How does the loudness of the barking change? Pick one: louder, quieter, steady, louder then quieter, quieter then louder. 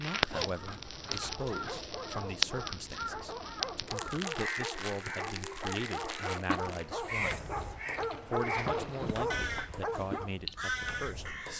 louder.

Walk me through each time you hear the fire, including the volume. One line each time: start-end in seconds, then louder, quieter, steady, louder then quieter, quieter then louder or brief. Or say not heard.
0.0-11.5 quieter.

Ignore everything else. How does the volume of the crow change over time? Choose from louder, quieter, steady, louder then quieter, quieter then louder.
louder.